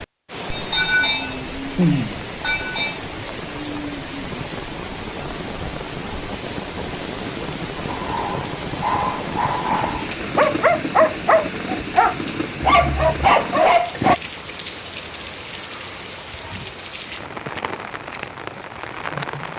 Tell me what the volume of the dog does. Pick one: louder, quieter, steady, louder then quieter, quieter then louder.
louder.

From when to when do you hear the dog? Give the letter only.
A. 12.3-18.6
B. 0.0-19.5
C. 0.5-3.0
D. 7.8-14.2
D.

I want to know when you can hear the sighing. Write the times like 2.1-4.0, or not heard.
0.5-3.0.